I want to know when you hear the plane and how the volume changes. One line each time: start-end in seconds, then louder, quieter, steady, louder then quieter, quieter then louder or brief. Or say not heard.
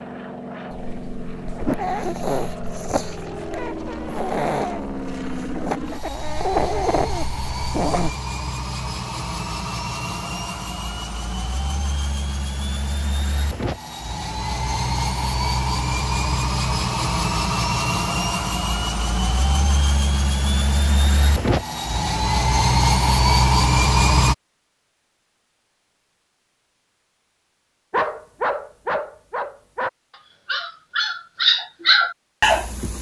0.0-24.4 louder.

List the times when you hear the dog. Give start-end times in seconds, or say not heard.
0.7-8.1, 27.9-32.9.